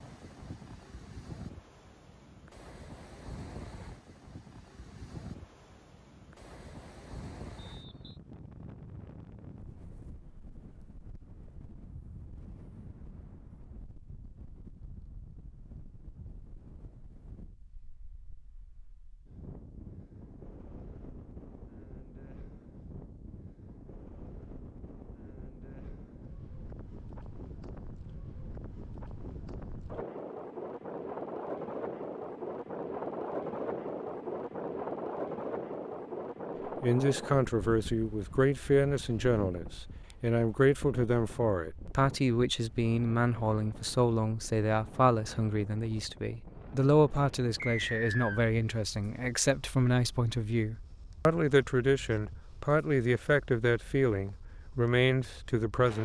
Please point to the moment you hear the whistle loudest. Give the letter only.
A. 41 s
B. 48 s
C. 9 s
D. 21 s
B.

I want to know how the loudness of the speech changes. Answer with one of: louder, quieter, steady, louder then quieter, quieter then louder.
steady.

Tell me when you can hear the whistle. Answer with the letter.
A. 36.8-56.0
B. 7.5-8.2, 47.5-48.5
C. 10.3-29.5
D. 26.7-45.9
B.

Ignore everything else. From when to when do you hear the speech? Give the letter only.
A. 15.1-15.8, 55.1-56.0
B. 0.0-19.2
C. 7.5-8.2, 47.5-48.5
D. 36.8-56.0
D.